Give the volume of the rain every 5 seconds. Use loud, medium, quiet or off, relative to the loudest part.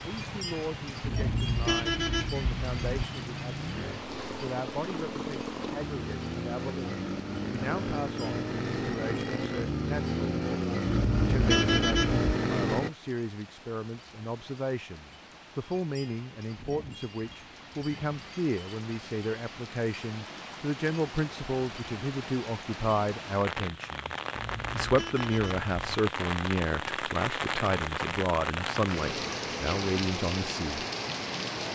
medium, quiet, quiet, quiet, medium, loud, loud.